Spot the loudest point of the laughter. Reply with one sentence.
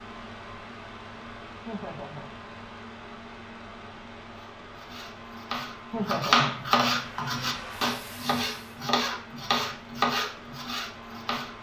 The loudest moment of the laughter is at 6 seconds.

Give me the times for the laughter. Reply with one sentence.
The laughter can be heard from 1.6 to 2.4 s and from 5.9 to 6.7 s.